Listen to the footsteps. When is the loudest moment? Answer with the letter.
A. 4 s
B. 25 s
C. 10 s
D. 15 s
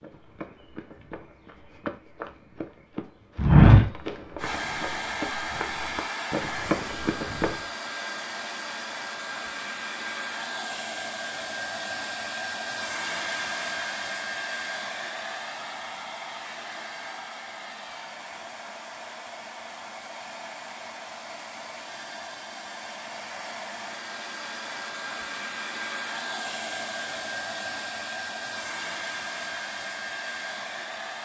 A.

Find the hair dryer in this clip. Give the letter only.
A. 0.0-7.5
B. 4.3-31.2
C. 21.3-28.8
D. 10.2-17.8
B.